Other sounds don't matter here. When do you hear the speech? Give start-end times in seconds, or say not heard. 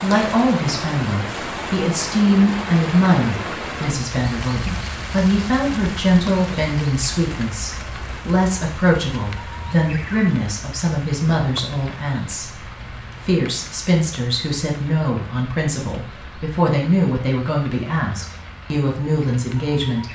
0.0-12.5, 13.2-20.0.